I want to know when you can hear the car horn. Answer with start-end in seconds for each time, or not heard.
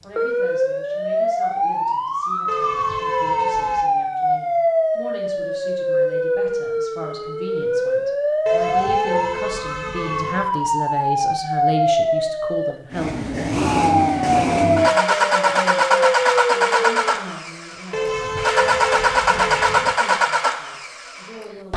2.5-3.9, 8.4-10.4, 17.9-19.9.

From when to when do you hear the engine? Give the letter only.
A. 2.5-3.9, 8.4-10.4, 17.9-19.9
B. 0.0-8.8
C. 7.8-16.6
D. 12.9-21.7
D.